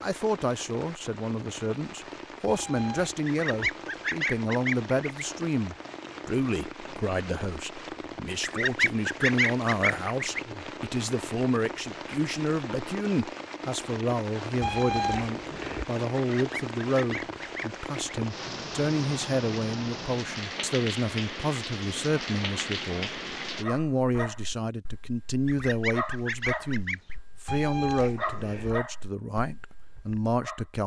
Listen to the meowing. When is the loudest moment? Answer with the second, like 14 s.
15 s.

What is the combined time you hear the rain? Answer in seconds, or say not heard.
24 s.